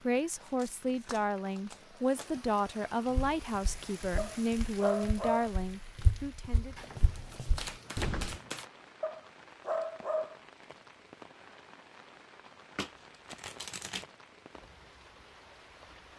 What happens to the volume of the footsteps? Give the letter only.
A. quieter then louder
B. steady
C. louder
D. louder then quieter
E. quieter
C.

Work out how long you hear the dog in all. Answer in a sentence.
The dog can be heard for 3 seconds in total.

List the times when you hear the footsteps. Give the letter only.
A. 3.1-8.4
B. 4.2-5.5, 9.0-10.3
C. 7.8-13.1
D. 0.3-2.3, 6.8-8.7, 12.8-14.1
A.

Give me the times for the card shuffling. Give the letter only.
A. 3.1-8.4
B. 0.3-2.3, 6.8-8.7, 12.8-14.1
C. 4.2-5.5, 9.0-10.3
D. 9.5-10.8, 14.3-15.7
B.